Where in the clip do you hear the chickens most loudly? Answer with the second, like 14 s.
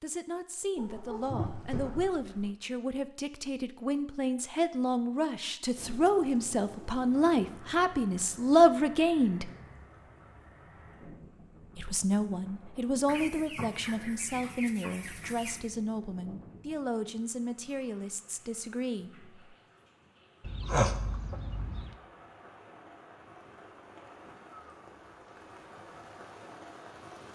21 s.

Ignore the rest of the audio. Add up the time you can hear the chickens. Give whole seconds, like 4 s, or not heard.
6 s.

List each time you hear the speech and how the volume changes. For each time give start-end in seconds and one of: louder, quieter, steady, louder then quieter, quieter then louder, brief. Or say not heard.
0.0-9.5 louder
11.8-19.3 quieter.